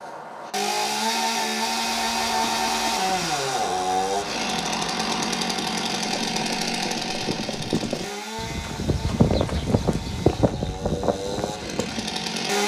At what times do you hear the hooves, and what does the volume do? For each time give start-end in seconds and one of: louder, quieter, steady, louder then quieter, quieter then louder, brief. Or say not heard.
1.7-12.2 louder.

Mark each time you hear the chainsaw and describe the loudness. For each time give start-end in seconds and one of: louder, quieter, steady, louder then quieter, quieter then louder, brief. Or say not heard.
0.0-12.6 quieter.